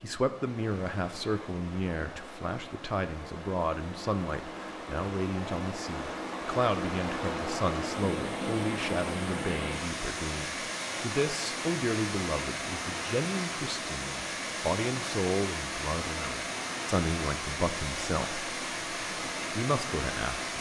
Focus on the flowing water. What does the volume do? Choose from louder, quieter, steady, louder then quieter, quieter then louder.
louder.